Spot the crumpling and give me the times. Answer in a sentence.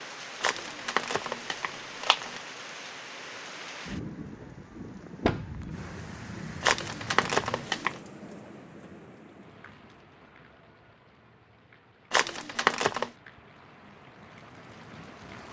The crumpling can be heard from 0.4 to 2.4 s, from 6.6 to 8.0 s and from 12.1 to 13.1 s.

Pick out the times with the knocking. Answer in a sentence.
You can hear the knocking from 5.2 to 5.7 s.